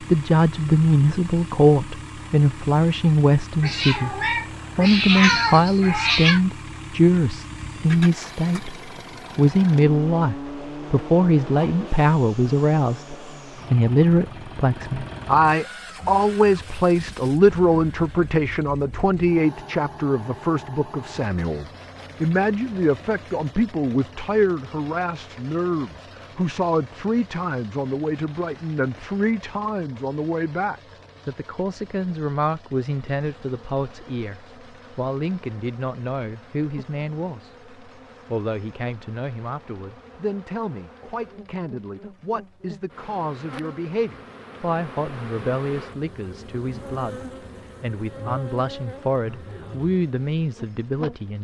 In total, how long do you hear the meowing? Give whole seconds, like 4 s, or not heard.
3 s.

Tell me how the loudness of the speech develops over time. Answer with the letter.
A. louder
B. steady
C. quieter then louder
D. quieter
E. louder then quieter
D.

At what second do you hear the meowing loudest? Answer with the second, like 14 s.
5 s.